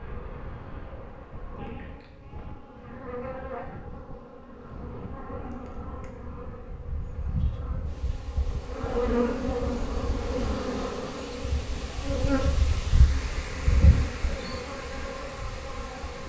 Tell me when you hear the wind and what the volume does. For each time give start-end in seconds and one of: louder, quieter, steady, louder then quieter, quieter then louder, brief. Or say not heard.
0.0-16.2 louder.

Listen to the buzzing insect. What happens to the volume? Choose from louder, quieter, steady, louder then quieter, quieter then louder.
louder then quieter.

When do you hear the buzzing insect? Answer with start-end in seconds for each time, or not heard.
0.0-16.2.